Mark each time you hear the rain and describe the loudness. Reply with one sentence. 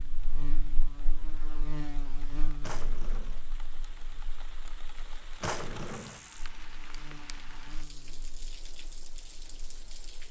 The rain can be heard from 0.0 to 10.2 s, getting louder.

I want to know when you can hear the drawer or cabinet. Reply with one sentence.
The drawer or cabinet can be heard from 2.6 to 3.5 s and from 5.4 to 6.2 s.